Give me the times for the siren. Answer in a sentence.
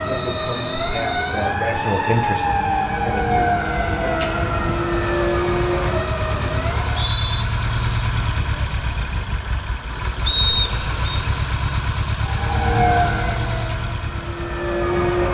You can hear the siren from 0.0 to 7.1 s and from 12.2 to 15.2 s.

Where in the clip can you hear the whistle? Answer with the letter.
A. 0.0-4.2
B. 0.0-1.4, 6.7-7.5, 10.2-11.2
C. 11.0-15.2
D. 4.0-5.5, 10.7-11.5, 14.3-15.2
B.